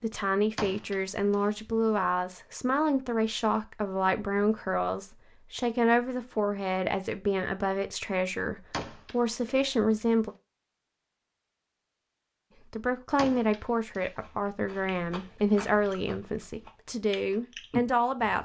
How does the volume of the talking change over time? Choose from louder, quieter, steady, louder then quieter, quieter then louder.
steady.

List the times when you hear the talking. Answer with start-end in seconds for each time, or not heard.
0.0-10.3, 12.7-18.4.